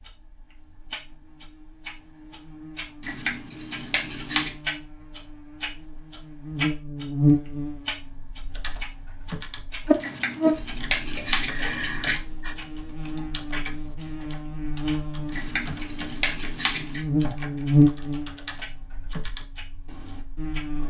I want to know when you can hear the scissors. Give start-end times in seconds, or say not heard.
3.0-4.5, 10.0-12.2, 15.3-17.1.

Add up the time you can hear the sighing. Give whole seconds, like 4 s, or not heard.
2 s.